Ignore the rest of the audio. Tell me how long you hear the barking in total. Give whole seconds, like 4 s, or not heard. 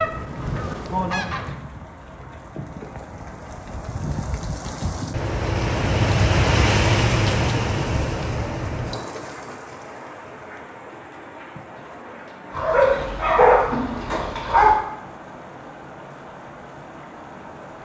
2 s.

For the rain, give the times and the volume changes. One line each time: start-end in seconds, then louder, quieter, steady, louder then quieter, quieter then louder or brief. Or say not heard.
0.0-17.7 louder then quieter.